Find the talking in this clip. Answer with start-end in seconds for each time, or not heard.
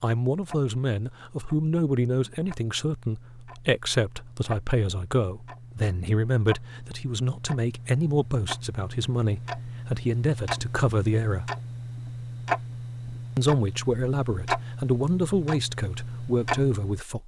0.0-11.5, 13.3-17.2.